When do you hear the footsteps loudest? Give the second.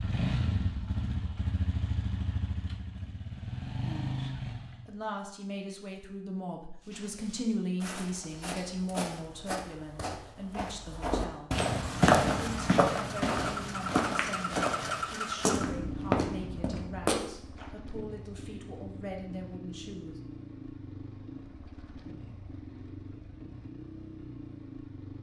12 s.